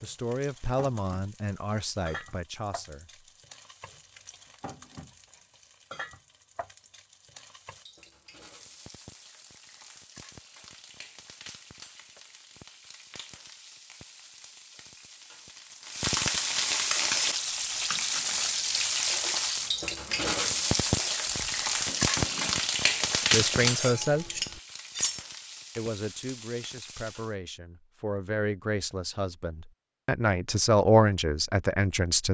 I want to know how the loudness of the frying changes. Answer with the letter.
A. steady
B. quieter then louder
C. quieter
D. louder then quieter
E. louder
E.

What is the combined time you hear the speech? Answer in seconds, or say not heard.
11 s.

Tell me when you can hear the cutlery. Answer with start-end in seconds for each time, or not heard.
16.9-25.2.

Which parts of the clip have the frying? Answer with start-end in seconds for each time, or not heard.
0.0-27.4.